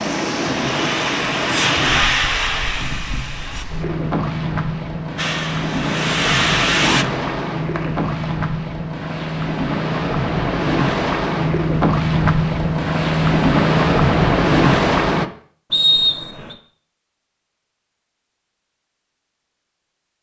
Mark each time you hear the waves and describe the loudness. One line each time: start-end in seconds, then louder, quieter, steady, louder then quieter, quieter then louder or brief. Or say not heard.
0.0-15.3 louder.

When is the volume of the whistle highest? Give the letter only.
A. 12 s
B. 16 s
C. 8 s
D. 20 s
B.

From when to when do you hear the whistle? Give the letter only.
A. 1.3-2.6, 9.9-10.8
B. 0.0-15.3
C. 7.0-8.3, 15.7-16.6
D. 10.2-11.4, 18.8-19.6
C.